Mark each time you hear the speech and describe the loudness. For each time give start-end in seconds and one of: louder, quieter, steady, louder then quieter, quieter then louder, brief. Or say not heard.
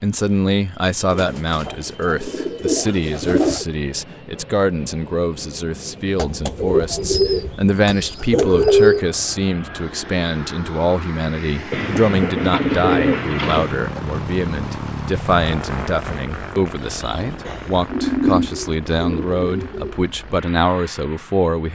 0.0-21.7 steady.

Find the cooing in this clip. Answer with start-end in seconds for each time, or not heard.
1.1-3.6, 6.2-9.1, 11.7-13.8, 17.4-19.9.